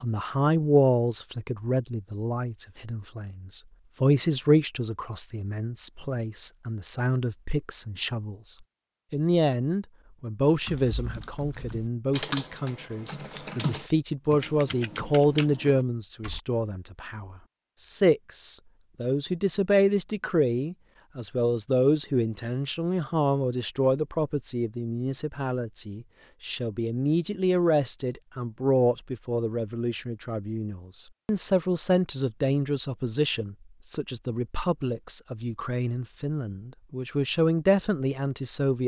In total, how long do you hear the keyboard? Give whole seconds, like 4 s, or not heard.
6 s.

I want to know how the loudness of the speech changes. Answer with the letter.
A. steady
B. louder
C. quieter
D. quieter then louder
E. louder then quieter
A.